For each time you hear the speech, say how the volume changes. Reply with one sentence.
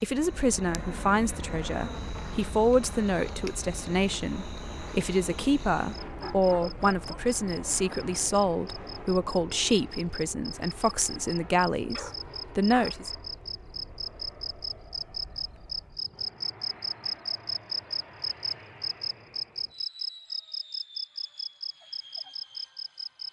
The speech can be heard from 0.0 to 13.1 s, at a steady volume.